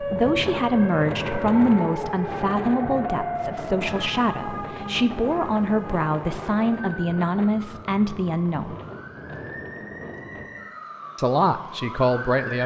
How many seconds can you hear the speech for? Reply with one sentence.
The speech can be heard for 10 seconds in total.